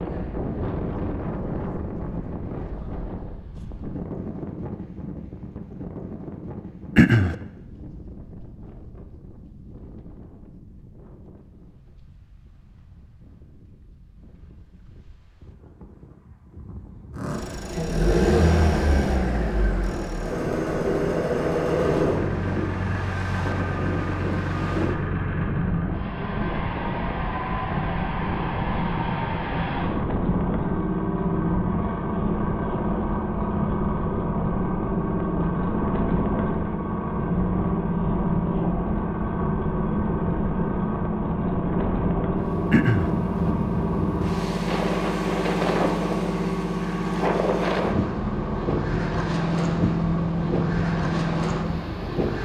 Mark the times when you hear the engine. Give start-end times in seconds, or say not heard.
17.1-52.4.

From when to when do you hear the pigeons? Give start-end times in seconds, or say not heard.
not heard.